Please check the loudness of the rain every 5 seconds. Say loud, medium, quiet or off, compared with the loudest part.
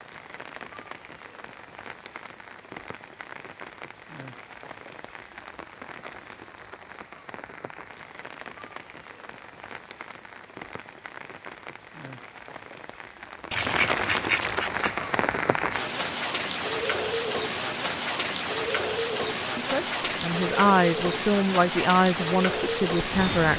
quiet, quiet, medium, loud, loud.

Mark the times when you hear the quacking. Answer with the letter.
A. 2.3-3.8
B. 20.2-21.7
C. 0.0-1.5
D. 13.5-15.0
D.